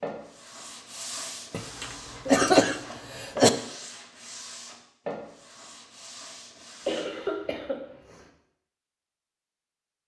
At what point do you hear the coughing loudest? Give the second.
2 s.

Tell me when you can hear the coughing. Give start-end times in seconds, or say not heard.
1.5-3.5, 6.8-8.2.